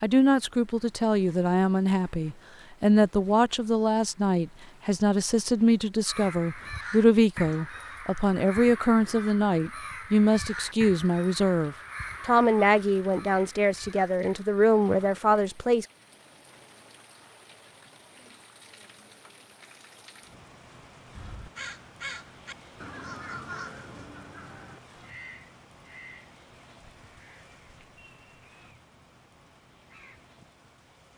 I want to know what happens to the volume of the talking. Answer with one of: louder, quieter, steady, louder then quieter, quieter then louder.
steady.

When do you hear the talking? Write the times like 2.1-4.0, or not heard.
0.0-15.8.